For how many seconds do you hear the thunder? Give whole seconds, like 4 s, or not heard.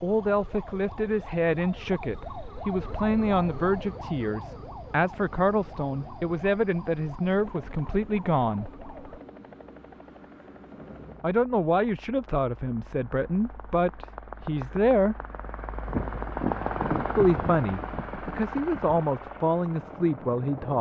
3 s.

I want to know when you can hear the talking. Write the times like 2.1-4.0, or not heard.
0.0-8.7, 11.2-15.2, 17.1-20.7.